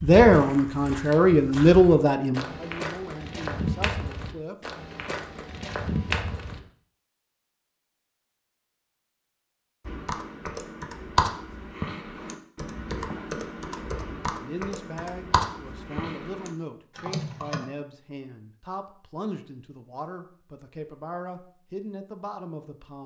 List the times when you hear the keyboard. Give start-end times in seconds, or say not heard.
9.8-17.6.